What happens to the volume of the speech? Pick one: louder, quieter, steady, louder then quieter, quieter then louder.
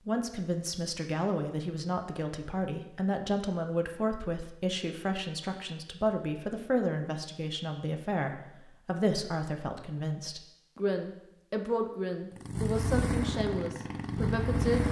steady.